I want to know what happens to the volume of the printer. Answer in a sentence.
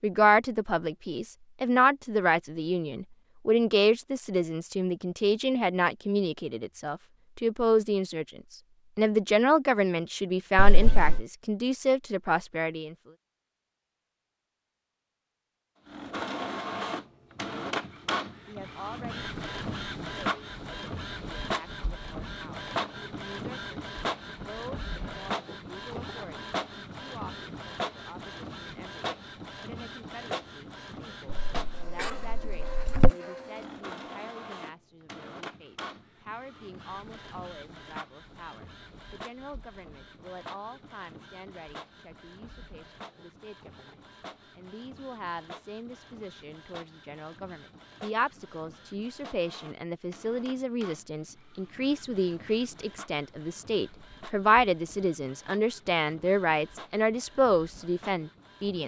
The loudness of the printer goes down.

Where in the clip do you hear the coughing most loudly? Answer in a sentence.
The loudest moment of the coughing is at 33 seconds.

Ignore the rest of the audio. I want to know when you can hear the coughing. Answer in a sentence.
The coughing can be heard from 10.6 to 11.2 s and from 31.3 to 33.1 s.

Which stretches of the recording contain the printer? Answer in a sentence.
The printer can be heard from 15.8 to 58.8 s.